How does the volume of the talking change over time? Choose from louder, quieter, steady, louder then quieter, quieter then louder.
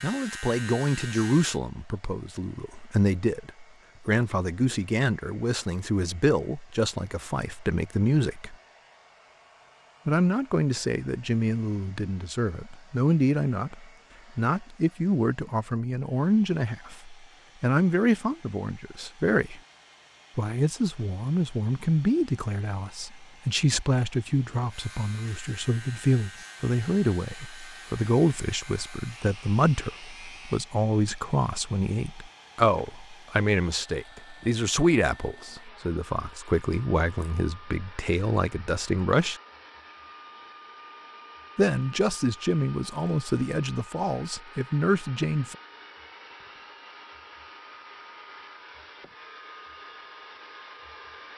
steady.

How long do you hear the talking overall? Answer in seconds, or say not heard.
41 s.